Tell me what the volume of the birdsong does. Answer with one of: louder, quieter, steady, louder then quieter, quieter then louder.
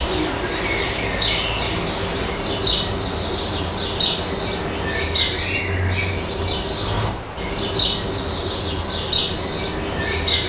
steady.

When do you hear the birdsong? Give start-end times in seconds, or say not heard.
0.0-10.4.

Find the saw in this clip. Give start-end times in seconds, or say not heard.
not heard.